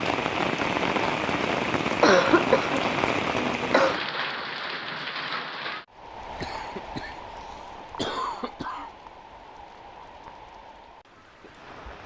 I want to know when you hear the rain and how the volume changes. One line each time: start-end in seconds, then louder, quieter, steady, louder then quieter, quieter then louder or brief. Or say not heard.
0.0-12.0 quieter.